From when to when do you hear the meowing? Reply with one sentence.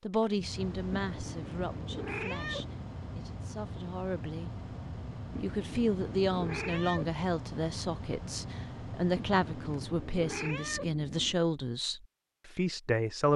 The meowing can be heard from 0.9 to 2.8 s, from 5.3 to 7.2 s and from 9.2 to 11.4 s.